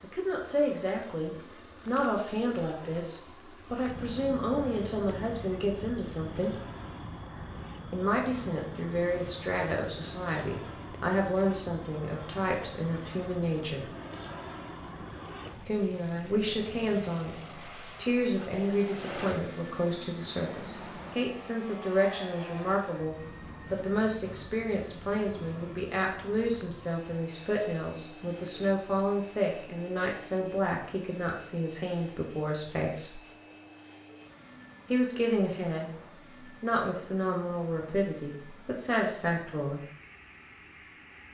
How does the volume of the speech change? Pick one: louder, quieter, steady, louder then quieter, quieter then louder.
steady.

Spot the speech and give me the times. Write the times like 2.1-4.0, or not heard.
0.0-6.5, 7.9-13.9, 15.7-33.2, 34.9-39.8.